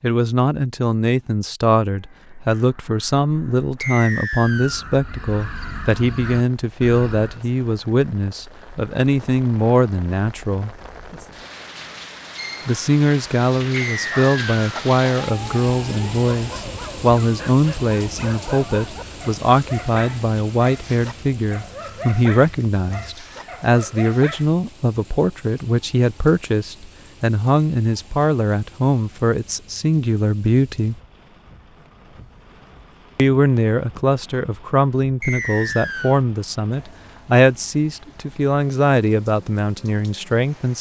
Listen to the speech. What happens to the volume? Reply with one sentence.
The loudness of the speech stays about the same.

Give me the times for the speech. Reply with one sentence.
You can hear the speech from 0.0 to 10.8 s, from 12.7 to 30.9 s and from 33.1 to 40.7 s.